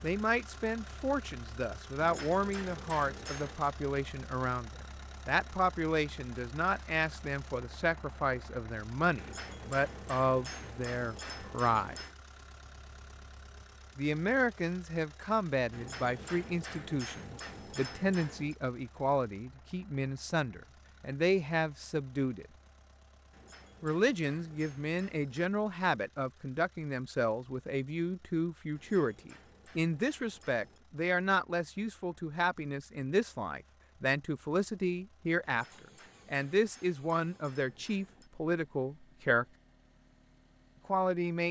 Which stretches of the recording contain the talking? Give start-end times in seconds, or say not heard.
0.0-11.9, 13.9-22.4, 23.8-39.5, 40.9-41.4.